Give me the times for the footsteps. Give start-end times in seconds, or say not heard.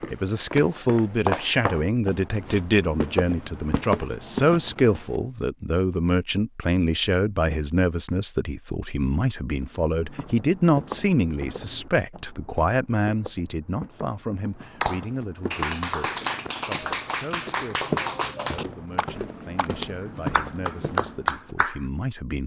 0.0-5.2, 9.6-21.6.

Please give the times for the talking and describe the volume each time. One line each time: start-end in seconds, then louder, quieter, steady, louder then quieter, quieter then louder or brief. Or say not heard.
0.1-22.4 quieter.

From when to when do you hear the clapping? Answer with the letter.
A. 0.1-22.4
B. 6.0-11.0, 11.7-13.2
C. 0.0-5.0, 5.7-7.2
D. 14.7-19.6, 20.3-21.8
D.